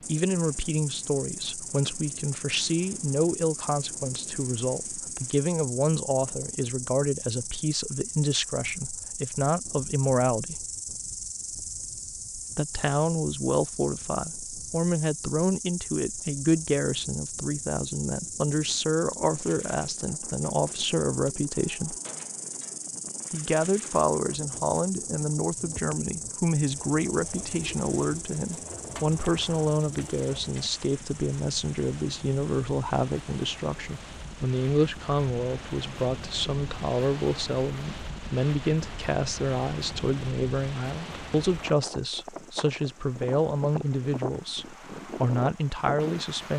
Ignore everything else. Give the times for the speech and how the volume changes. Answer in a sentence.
The speech can be heard from 0.1 to 10.7 s, at a steady volume; from 12.6 to 21.9 s, at a steady volume; and from 23.3 to 46.5 s, at a steady volume.